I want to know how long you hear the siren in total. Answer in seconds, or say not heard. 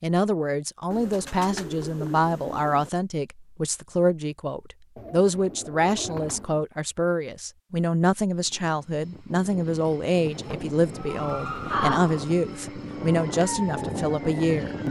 4 s.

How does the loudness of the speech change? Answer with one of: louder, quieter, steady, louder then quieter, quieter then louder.
steady.